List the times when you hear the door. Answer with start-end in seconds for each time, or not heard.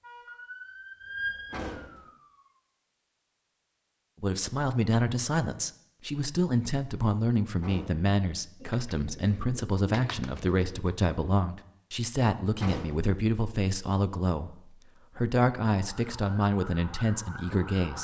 1.5-2.1, 7.6-8.1, 12.6-13.2.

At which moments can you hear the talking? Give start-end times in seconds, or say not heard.
4.2-18.0.